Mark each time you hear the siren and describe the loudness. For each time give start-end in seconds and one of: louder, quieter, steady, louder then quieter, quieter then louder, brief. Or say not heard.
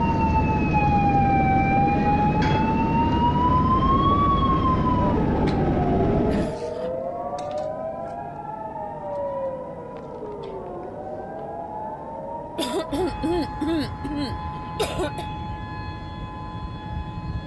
0.0-17.4 quieter.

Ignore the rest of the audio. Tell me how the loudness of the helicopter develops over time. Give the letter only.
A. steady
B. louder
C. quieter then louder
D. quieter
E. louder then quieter
D.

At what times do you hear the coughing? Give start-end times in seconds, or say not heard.
6.3-7.1, 12.6-15.2.